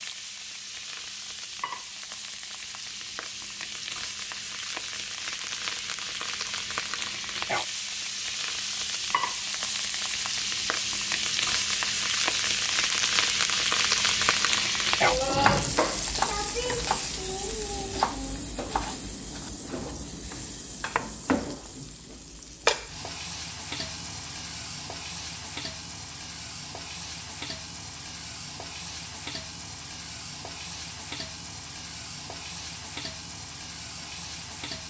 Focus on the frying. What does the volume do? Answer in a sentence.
The volume of the frying goes up, then down.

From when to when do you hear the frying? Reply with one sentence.
You can hear the frying from 0.0 to 34.8 s.